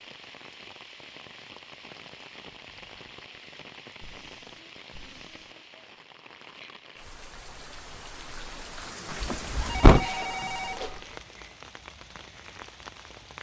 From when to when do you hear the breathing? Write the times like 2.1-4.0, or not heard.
4.0-5.5.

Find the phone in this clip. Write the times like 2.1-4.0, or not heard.
9.1-11.2.